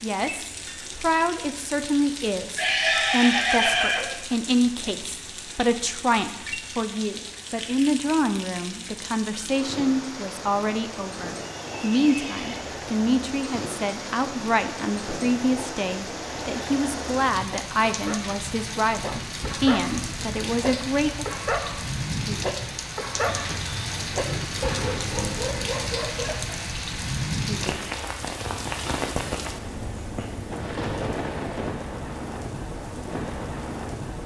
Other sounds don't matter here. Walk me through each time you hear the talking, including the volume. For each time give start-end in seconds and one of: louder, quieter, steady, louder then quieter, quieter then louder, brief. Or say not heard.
0.0-21.2 steady.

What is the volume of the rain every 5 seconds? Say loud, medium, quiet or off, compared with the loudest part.
medium, medium, medium, loud, loud, loud, loud.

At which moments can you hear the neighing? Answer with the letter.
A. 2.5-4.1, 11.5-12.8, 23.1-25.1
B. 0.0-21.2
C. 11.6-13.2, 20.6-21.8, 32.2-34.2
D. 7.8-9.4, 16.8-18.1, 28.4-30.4
A.